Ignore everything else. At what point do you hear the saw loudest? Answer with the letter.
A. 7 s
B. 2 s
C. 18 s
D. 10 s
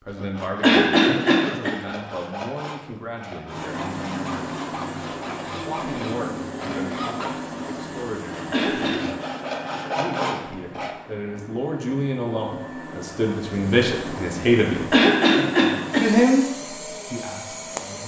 D.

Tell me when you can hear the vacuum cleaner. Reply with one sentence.
You can hear the vacuum cleaner from 3.5 to 18.0 s.